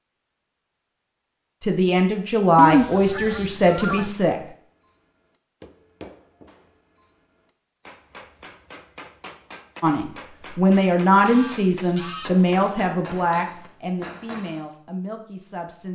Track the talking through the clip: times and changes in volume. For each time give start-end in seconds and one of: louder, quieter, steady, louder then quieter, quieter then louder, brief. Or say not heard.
1.6-4.4 brief
9.8-15.9 quieter.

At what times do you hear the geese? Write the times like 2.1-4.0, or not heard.
2.5-4.1, 11.2-12.7.